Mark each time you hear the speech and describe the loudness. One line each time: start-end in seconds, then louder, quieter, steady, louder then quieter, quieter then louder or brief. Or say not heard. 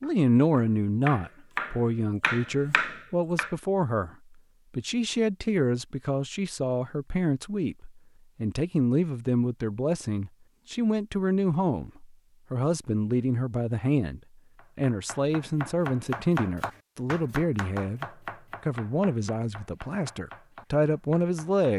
0.0-21.7 steady.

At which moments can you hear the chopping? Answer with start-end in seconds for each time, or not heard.
0.0-3.5, 14.6-21.6.